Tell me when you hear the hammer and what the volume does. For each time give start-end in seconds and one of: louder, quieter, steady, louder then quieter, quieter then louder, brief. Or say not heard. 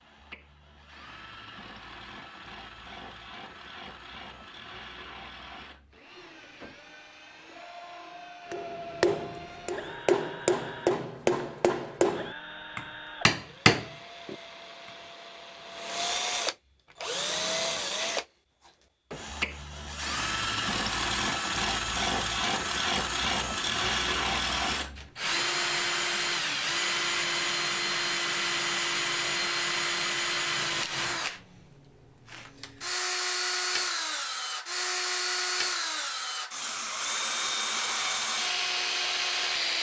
8.5-14.3 louder.